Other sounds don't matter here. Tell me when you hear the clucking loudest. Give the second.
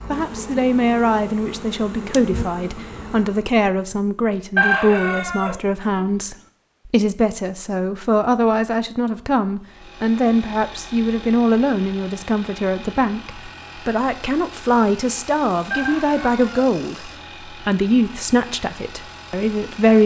5 s.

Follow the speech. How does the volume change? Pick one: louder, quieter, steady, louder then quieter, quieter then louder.
steady.